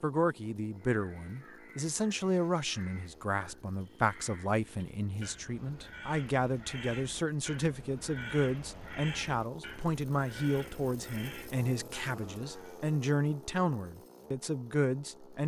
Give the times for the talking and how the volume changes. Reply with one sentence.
You can hear the talking from 0.0 to 15.4 s, at a steady volume.